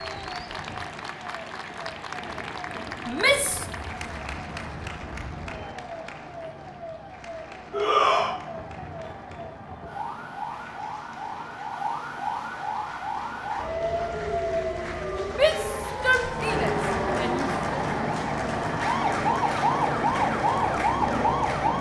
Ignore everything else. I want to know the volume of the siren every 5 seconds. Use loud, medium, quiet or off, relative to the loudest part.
quiet, quiet, medium, loud, loud.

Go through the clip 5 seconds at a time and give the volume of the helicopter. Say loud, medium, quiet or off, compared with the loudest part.
quiet, quiet, quiet, loud, loud.